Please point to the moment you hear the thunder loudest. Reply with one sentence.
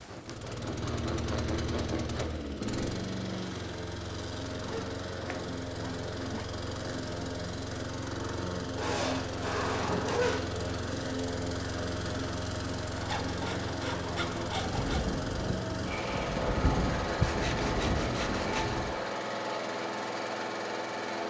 The volume of the thunder peaks at 17 seconds.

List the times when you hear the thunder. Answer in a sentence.
The thunder can be heard from 14.6 to 18.9 s.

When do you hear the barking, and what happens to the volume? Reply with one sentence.
You can't hear the barking here.